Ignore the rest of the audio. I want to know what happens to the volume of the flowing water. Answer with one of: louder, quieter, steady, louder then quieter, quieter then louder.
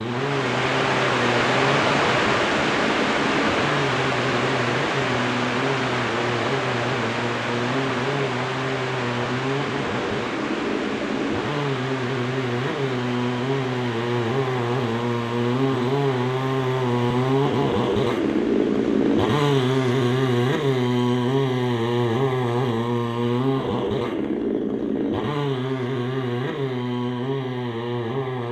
quieter.